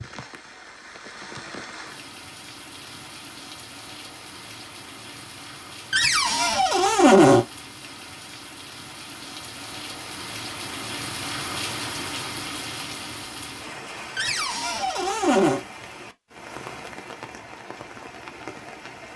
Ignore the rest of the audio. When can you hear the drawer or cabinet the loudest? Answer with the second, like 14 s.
7 s.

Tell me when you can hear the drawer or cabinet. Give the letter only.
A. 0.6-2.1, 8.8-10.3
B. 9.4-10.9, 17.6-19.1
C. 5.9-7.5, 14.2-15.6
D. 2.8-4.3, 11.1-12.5
C.